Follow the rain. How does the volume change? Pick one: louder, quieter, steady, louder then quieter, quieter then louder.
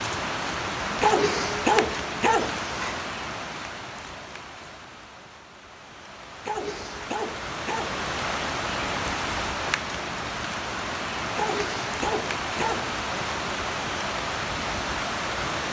quieter then louder.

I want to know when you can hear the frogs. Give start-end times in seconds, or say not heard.
not heard.